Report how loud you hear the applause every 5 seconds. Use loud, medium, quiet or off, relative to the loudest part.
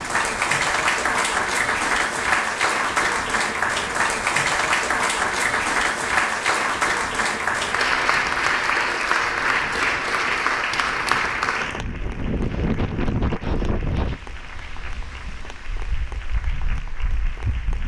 loud, loud, medium, quiet.